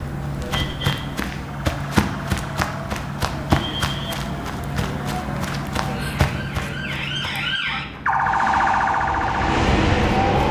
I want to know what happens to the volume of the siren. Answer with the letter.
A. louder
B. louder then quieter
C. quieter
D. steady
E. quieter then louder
A.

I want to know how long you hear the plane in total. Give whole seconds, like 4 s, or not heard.
2 s.